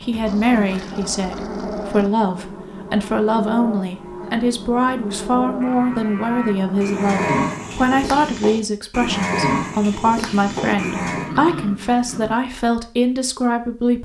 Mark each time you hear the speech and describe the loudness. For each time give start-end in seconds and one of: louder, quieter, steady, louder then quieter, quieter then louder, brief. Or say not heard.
0.0-13.9 steady.